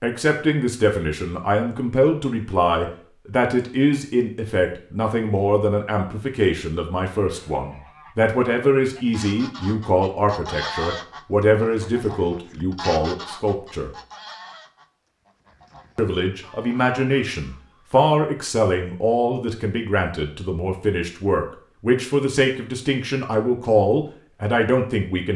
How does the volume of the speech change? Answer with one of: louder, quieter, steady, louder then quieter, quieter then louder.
steady.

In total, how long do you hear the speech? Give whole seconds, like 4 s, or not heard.
23 s.